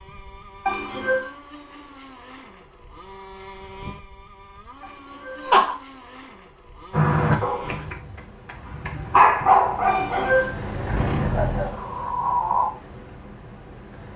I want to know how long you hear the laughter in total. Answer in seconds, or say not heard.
2 s.